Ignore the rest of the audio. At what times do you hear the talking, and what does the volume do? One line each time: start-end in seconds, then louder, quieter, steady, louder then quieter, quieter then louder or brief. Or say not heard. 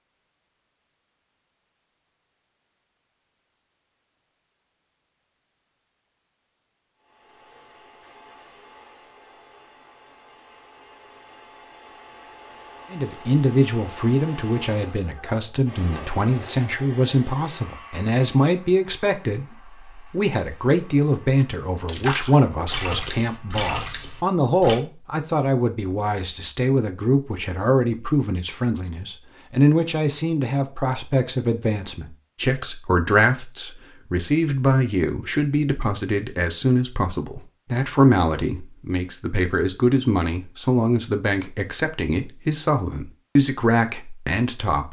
12.9-44.8 steady.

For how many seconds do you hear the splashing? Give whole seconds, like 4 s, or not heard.
3 s.